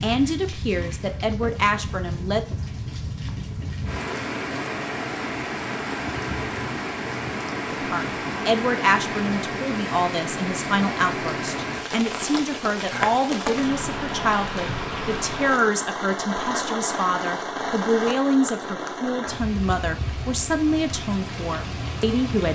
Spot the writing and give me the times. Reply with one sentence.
You can't hear the writing here.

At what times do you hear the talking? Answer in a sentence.
The talking can be heard from 0.0 to 2.5 s and from 7.7 to 22.5 s.